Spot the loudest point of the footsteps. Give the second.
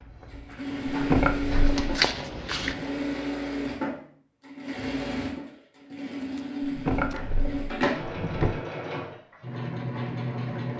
2 s.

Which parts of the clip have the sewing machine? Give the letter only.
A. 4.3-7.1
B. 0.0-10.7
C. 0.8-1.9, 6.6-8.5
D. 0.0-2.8
B.